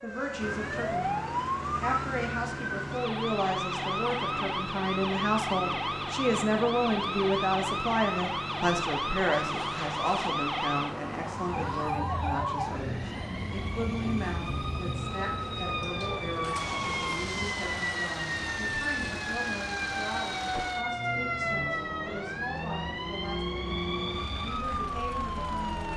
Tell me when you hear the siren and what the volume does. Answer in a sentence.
You can hear the siren from 0.0 to 25.9 s, at a steady volume.